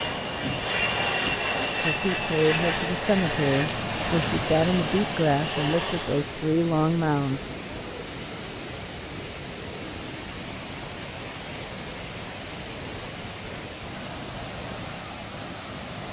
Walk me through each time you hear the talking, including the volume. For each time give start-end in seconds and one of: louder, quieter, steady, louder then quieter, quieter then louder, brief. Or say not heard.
1.8-7.4 steady.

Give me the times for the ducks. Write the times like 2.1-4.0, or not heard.
not heard.